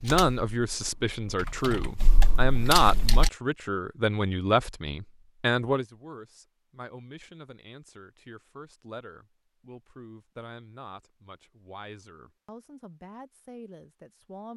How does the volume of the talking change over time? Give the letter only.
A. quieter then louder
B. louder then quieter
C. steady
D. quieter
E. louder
D.